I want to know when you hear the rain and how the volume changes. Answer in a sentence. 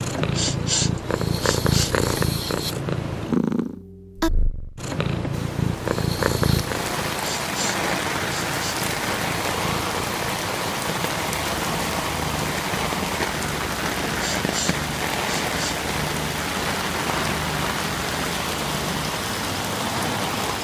You can hear the rain from 5.3 to 20.6 s, at a steady volume.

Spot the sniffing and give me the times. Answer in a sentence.
The sniffing can be heard from 0.1 to 1.9 s, from 7.1 to 8.8 s and from 14.1 to 15.8 s.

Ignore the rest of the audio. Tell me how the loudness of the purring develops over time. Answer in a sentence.
The loudness of the purring goes down.